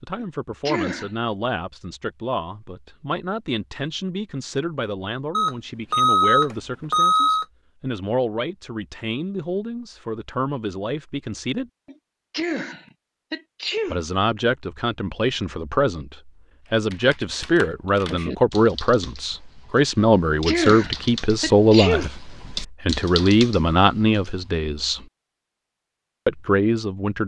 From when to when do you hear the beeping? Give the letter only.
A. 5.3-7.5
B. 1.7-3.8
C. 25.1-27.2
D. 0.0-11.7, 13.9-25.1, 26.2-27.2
A.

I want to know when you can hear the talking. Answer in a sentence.
You can hear the talking from 0.0 to 11.7 s, from 13.9 to 25.1 s and from 26.2 to 27.2 s.